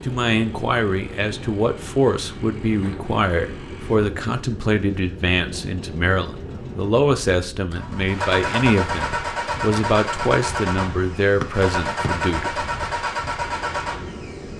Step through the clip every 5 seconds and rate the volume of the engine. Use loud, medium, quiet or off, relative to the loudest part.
quiet, loud, loud.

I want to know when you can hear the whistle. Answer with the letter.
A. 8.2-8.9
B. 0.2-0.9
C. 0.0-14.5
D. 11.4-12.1
D.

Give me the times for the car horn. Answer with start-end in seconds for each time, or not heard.
not heard.